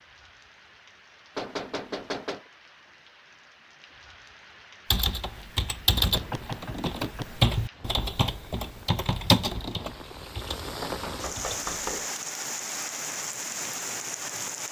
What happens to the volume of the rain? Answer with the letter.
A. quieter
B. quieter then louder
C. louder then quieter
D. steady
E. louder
E.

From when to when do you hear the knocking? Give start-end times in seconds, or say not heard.
1.4-2.5, 6.0-7.3, 10.8-12.1.